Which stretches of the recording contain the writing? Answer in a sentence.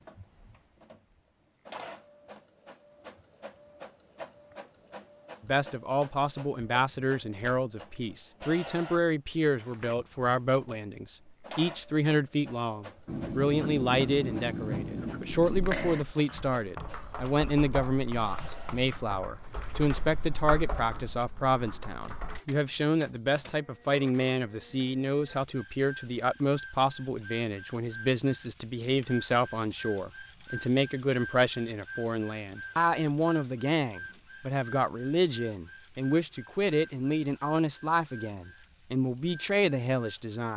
The writing can be heard from 13.1 to 18.9 s.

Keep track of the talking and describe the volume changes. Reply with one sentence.
The loudness of the talking stays about the same.